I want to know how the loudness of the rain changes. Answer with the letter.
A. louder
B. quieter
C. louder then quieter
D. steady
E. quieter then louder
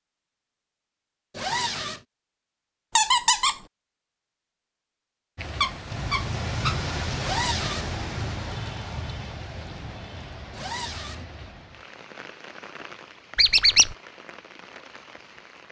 B.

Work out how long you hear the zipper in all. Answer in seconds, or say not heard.
2 s.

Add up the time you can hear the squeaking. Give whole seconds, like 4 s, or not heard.
3 s.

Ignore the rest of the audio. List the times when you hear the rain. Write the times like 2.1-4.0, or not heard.
5.3-15.6.